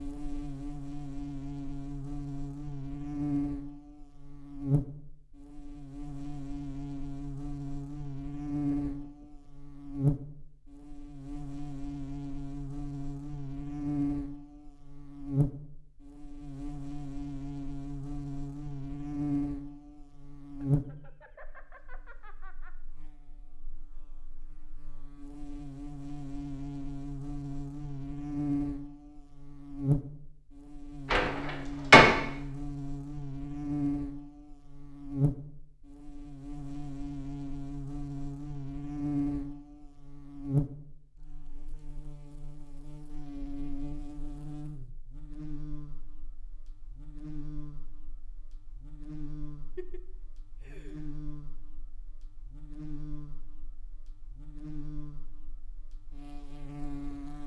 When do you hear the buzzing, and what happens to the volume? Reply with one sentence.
You can hear the buzzing from 0.0 to 57.4 s, getting quieter.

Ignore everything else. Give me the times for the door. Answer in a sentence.
You can hear the door from 31.1 to 32.0 s.